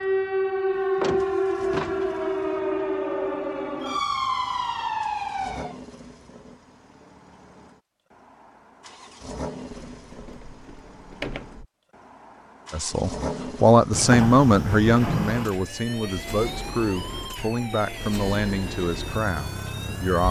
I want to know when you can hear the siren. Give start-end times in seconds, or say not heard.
0.0-5.8, 15.4-20.2.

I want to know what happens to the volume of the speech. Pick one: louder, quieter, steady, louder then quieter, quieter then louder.
quieter.